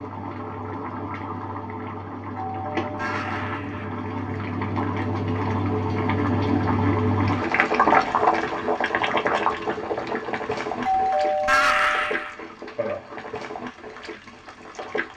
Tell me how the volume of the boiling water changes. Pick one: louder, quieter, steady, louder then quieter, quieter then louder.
louder then quieter.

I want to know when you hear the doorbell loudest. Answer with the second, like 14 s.
12 s.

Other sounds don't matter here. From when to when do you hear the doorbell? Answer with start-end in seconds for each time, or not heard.
2.4-4.0, 10.8-12.3.